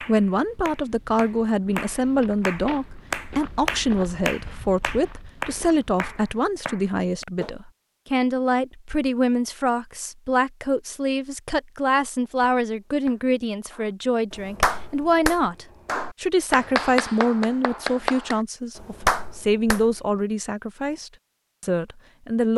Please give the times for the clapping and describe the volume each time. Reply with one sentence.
The clapping can be heard from 0.0 to 7.5 s, getting louder then quieter; and from 12.2 to 19.9 s, getting louder.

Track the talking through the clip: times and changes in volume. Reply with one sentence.
The talking can be heard from 0.0 to 22.5 s, at a steady volume.